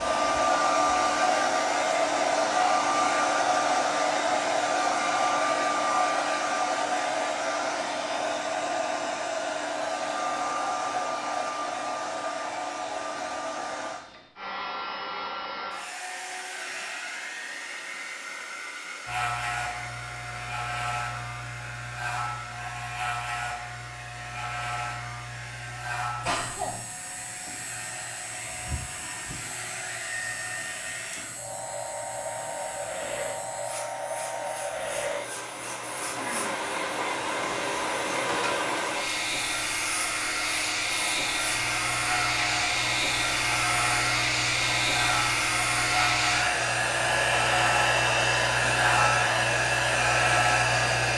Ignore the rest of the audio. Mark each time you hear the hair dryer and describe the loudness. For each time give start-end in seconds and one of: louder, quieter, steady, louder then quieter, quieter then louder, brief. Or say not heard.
0.0-51.1 quieter then louder.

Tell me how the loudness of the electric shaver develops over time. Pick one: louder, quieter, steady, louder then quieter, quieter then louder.
quieter then louder.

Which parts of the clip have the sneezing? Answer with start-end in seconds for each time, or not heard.
26.2-26.8.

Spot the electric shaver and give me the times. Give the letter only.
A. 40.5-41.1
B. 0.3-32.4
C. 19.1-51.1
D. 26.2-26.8
C.